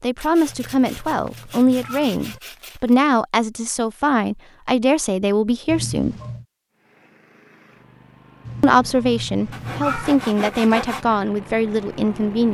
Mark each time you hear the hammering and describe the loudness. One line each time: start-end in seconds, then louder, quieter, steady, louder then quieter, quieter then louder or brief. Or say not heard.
not heard.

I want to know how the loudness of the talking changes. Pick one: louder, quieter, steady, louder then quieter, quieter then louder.
steady.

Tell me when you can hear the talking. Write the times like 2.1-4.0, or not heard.
0.0-6.2, 8.6-12.5.